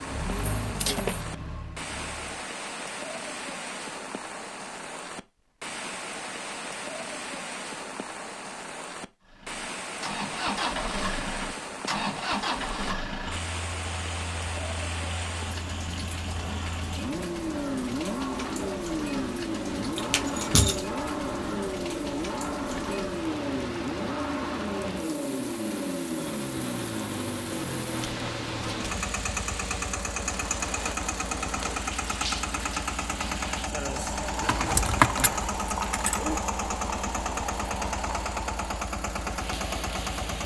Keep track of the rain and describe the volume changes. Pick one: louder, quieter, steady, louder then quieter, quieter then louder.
steady.